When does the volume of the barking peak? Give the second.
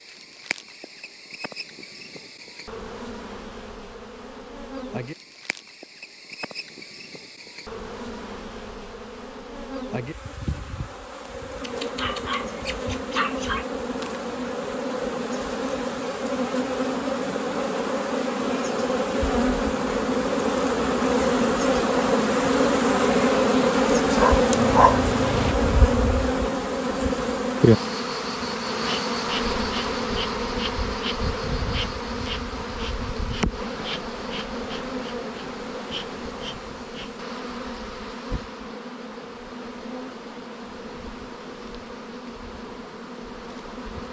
25 s.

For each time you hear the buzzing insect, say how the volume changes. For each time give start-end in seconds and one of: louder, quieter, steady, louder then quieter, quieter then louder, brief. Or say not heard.
0.0-44.0 louder then quieter.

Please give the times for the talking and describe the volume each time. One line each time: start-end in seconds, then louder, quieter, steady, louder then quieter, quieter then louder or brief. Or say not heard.
not heard.